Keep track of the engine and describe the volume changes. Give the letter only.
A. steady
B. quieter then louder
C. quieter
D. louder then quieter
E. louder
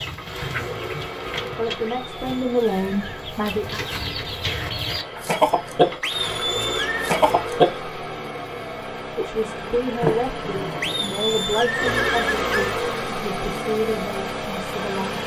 E.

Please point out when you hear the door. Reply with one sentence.
You can hear the door from 10.0 to 11.3 s.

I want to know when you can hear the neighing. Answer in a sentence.
You can hear the neighing from 1.9 to 3.3 s, from 6.0 to 7.0 s and from 10.8 to 12.8 s.